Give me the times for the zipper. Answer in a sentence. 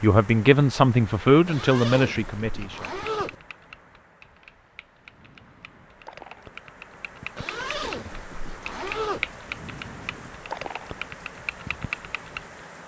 You can hear the zipper from 1.4 to 3.4 s and from 7.3 to 9.2 s.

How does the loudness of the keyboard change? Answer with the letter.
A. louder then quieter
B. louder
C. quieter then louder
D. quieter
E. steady
B.